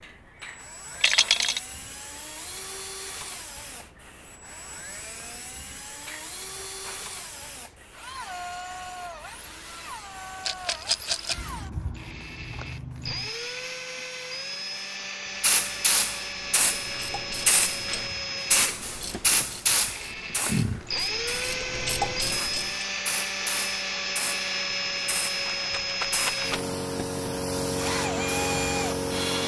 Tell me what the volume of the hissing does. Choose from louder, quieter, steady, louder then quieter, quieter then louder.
louder.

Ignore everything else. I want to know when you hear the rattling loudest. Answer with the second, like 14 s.
1 s.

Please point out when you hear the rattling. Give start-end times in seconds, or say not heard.
1.0-1.6, 10.4-11.3, 24.7-26.6.